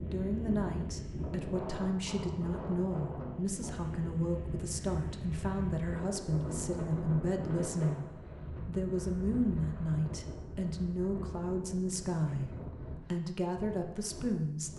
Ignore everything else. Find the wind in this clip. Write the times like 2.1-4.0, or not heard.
0.0-14.7.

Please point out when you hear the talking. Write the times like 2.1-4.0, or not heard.
0.0-8.1, 8.7-12.5, 13.1-14.7.